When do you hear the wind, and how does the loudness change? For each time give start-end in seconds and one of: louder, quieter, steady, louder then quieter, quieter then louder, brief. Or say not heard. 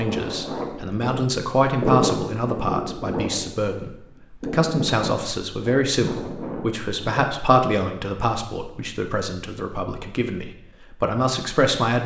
0.0-7.2 louder then quieter.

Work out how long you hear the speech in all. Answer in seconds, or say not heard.
12 s.